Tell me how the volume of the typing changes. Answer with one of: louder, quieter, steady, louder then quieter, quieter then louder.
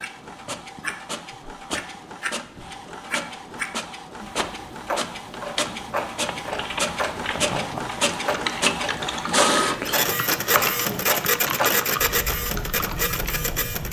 louder then quieter.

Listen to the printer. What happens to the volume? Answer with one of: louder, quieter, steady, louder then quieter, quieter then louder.
louder.